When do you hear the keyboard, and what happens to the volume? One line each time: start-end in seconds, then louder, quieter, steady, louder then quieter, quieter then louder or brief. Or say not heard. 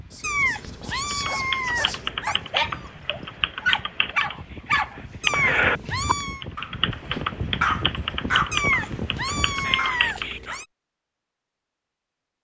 1.1-10.3 louder then quieter.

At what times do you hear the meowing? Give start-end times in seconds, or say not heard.
0.2-2.4, 5.2-6.5, 8.5-10.7.